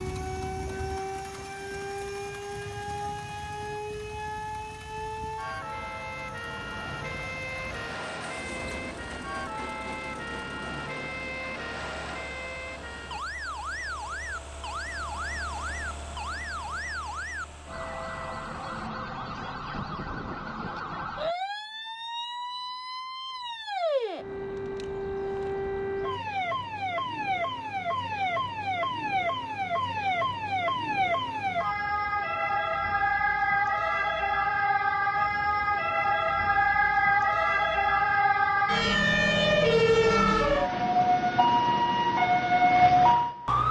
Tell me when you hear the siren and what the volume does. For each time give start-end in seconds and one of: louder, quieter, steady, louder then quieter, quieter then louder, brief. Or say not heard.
0.0-43.6 louder.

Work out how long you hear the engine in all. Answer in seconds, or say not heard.
19 s.